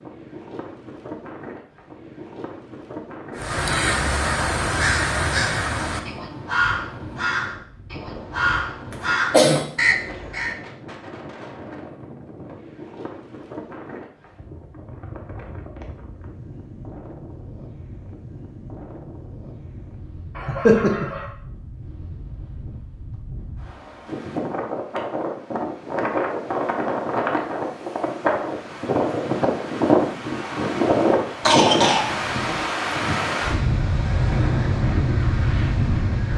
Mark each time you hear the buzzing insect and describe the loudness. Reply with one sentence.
You can't hear the buzzing insect here.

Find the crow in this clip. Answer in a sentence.
You can hear the crow from 3.4 to 10.6 s.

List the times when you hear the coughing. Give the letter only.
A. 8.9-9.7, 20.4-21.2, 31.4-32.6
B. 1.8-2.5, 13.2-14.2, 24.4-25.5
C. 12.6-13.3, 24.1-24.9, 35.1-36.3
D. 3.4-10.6
A.